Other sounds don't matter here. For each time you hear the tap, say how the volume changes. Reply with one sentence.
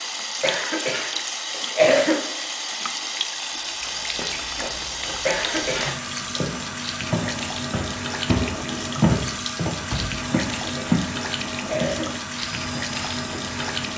The tap can be heard from 0.0 to 13.9 s, at a steady volume.